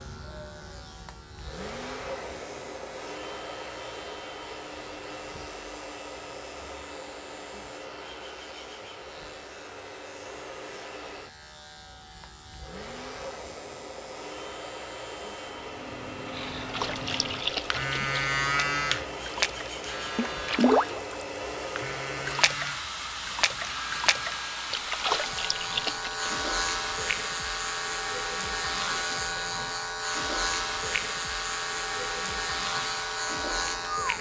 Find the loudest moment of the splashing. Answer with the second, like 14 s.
21 s.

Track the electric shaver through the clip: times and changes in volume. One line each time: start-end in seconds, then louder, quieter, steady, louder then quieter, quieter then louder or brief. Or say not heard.
0.0-34.1 louder.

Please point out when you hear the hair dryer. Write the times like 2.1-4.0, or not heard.
0.0-34.1.